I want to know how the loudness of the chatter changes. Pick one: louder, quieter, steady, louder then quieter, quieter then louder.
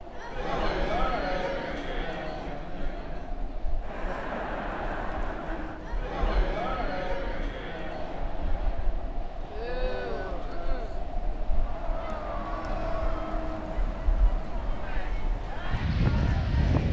quieter.